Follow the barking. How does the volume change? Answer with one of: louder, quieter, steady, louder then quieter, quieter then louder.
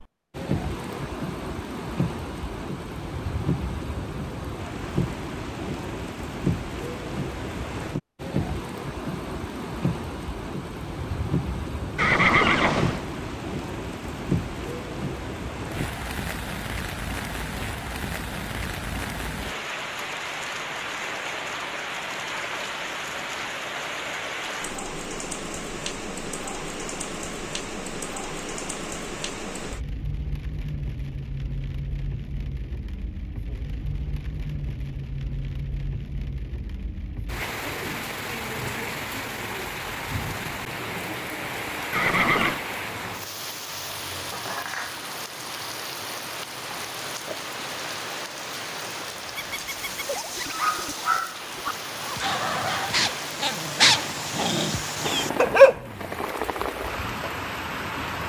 louder.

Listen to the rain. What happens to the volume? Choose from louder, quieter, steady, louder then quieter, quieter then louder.
steady.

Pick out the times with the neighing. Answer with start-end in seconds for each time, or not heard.
11.9-13.1, 41.9-42.6.